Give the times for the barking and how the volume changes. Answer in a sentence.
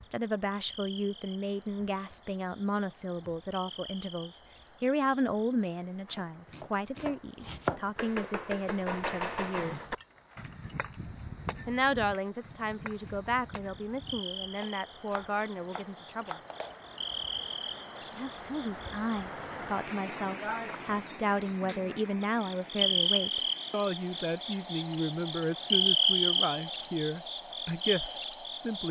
You can't hear the barking here.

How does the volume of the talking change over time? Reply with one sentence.
The volume of the talking stays about the same.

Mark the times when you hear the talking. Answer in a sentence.
You can hear the talking from 0.0 to 9.9 s, from 11.7 to 16.4 s and from 18.0 to 28.8 s.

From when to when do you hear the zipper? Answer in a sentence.
You can't hear the zipper here.